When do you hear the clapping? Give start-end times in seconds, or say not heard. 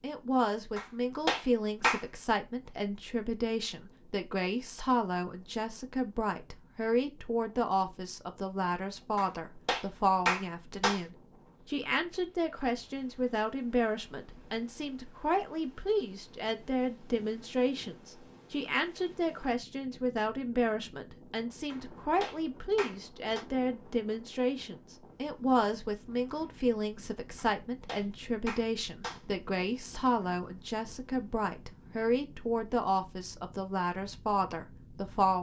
0.8-2.0, 9.2-11.0, 21.7-23.4, 27.4-29.2.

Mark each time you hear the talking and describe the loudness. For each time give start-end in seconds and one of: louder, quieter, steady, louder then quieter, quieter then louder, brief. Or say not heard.
0.0-35.3 steady.